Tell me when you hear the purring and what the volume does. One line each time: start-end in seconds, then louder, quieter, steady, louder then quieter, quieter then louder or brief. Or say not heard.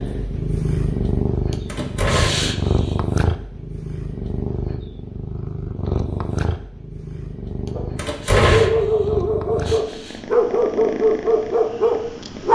0.0-12.5 quieter.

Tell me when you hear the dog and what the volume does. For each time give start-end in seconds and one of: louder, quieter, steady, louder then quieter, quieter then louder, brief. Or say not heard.
7.8-12.5 steady.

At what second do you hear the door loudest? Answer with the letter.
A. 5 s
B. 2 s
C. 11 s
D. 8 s
D.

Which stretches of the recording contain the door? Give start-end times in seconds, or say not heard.
1.6-2.5, 8.0-8.8.